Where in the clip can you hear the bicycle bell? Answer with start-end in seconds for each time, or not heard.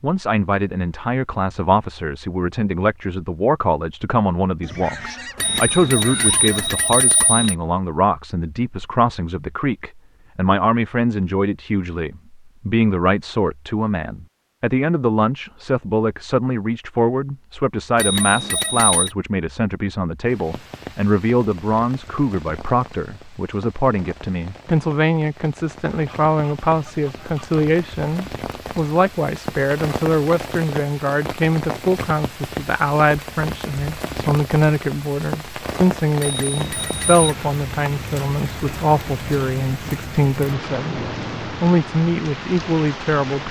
5.3-7.5, 17.9-19.1, 36.2-37.4.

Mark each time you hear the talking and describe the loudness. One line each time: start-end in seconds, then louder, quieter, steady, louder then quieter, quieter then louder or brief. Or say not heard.
0.0-43.4 steady.